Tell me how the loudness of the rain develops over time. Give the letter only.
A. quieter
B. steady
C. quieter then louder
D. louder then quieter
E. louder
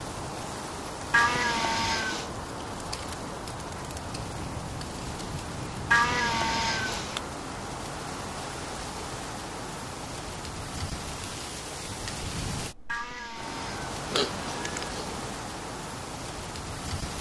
B.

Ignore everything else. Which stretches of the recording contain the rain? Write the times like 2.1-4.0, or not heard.
0.0-17.1.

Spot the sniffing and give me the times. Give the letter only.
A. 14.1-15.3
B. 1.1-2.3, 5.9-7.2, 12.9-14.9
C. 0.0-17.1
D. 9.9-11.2
A.